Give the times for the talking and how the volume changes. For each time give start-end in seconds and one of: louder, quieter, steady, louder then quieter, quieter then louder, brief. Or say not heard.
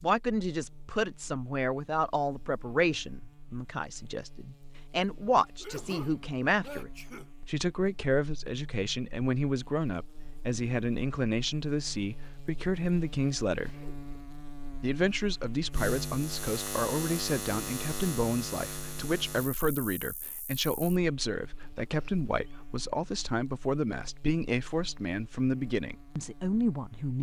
0.0-13.9 steady
14.8-27.1 steady.